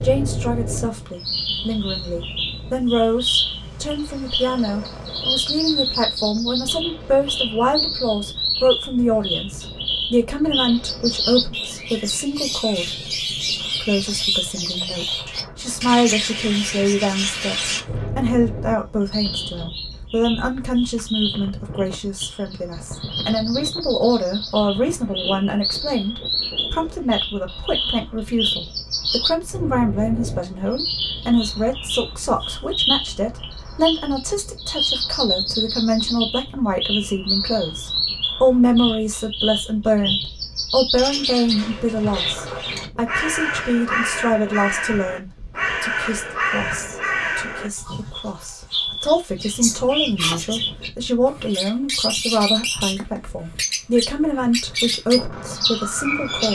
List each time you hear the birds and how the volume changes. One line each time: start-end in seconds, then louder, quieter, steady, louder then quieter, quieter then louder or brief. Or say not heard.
0.0-56.5 steady.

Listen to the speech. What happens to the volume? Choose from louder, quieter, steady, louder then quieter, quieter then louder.
steady.